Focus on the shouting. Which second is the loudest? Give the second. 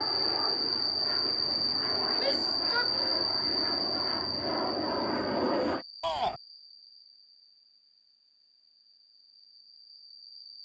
6 s.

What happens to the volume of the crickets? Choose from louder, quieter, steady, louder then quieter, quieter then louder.
quieter.